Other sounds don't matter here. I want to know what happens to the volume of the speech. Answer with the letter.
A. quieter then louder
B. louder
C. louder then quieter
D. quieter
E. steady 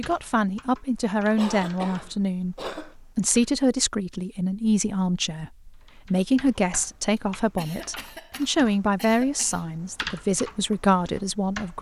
E.